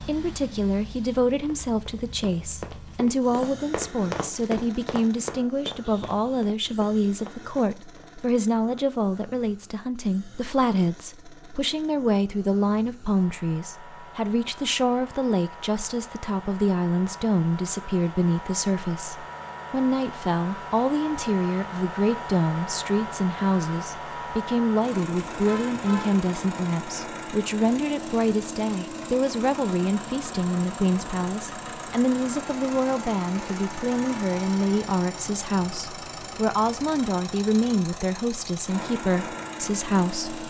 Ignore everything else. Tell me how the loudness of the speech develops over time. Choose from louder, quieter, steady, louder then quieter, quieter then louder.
steady.